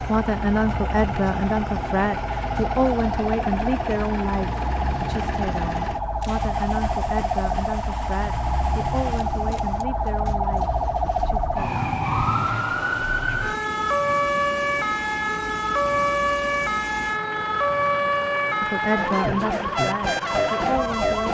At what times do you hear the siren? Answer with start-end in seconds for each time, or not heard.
0.0-21.2.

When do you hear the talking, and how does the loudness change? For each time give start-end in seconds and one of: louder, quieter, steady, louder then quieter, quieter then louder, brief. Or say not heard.
0.0-11.8 quieter
18.6-21.2 brief.